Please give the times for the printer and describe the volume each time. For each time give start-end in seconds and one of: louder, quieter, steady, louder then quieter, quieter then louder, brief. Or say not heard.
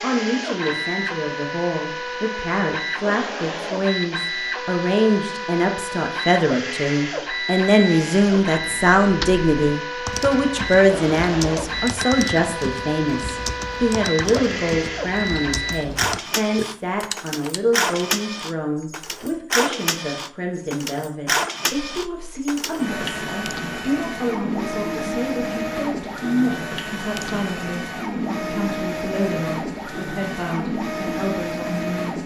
0.0-32.2 steady.